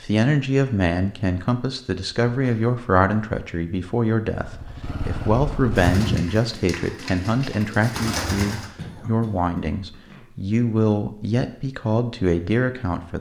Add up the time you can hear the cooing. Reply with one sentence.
The cooing can be heard for 3 seconds in total.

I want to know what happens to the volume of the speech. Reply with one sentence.
The volume of the speech stays about the same.